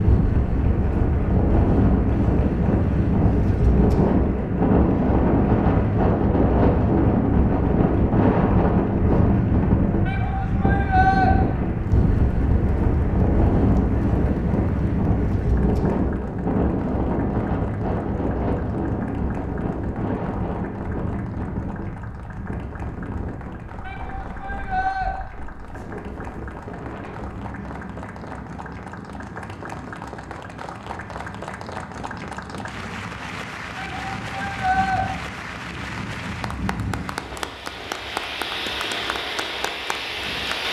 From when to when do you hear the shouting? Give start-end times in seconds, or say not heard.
10.1-11.3, 23.8-25.1, 33.8-35.0.